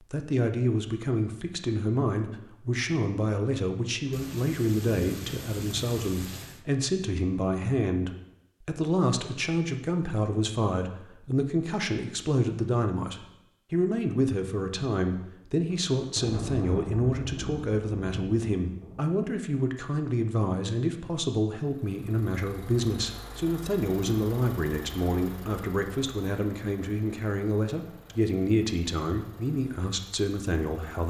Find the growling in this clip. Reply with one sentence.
The growling can't be heard in this clip.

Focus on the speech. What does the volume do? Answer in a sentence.
The loudness of the speech stays about the same.